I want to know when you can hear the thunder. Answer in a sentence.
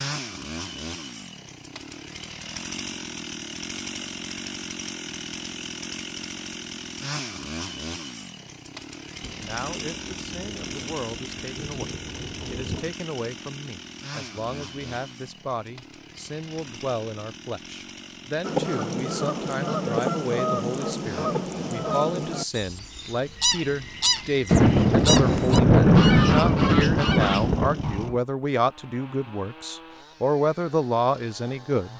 The thunder can be heard from 9.2 to 12.9 s and from 24.5 to 27.9 s.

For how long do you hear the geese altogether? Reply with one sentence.
You can hear the geese for 10 seconds altogether.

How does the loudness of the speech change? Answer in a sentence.
The loudness of the speech goes up.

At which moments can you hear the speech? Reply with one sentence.
You can hear the speech from 9.4 to 31.9 s.